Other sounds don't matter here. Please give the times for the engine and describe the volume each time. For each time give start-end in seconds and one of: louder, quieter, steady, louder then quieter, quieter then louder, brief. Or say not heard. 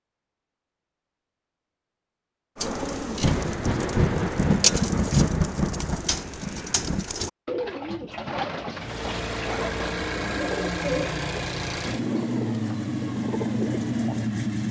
8.8-14.6 steady.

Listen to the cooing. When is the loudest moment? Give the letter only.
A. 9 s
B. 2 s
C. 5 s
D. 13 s
C.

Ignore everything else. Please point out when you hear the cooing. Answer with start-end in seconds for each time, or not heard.
2.5-14.3.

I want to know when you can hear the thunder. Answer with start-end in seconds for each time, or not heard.
3.2-7.0.